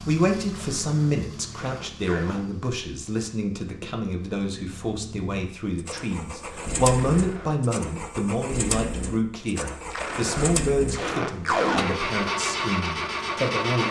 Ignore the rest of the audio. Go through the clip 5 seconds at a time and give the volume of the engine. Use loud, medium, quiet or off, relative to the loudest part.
quiet, medium, loud.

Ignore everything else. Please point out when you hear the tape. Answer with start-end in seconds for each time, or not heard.
0.5-2.5, 6.9-7.5, 9.9-11.8.